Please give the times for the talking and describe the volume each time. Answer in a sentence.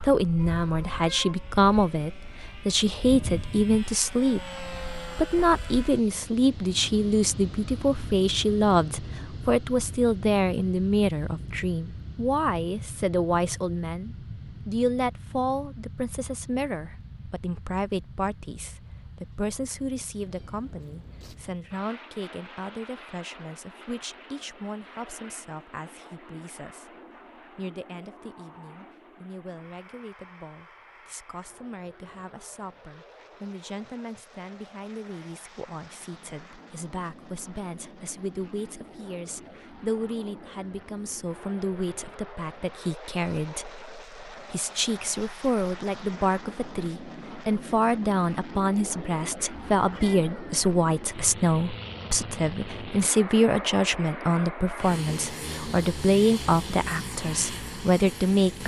You can hear the talking from 0.0 to 58.6 s, getting quieter then louder.